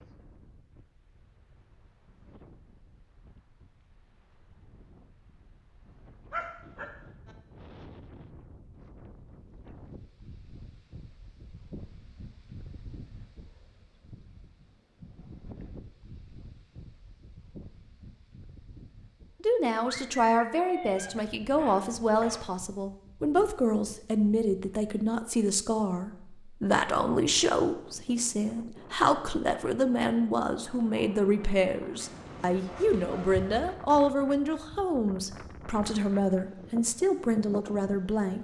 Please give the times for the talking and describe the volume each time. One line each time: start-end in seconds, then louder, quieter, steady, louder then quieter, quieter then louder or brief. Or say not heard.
19.4-38.3 steady.